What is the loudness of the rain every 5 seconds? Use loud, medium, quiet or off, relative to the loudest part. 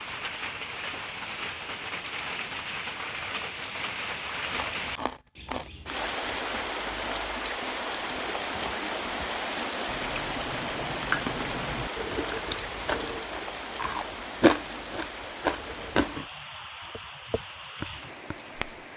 loud, loud, loud, medium.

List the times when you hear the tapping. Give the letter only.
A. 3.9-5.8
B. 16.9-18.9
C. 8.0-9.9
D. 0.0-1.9
B.